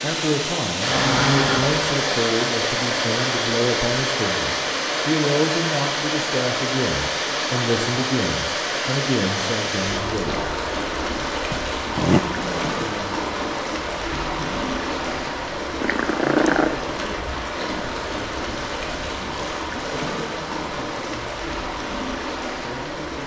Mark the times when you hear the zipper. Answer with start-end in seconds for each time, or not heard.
not heard.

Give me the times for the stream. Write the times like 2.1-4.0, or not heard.
0.0-23.2.